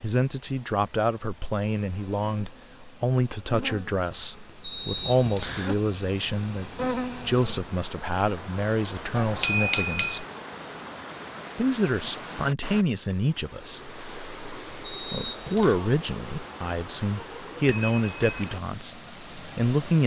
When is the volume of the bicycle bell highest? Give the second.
10 s.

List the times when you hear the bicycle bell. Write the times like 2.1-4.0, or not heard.
0.7-1.1, 9.2-10.2, 17.6-18.6.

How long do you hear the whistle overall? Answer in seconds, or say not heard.
2 s.